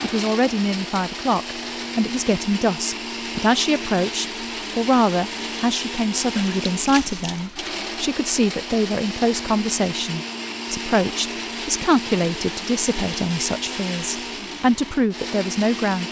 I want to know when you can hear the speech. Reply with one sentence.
The speech can be heard from 0.0 to 16.0 s.